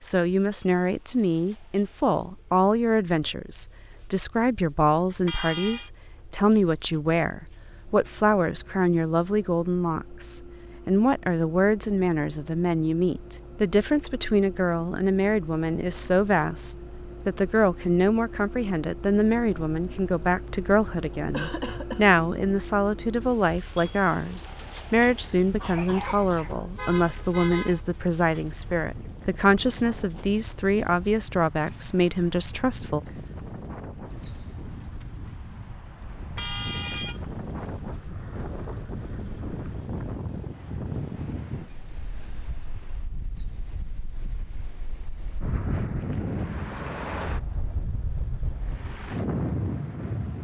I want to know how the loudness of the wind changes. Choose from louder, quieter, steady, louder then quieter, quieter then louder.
louder.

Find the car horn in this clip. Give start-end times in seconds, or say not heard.
5.2-5.9, 26.0-27.8, 36.4-37.2.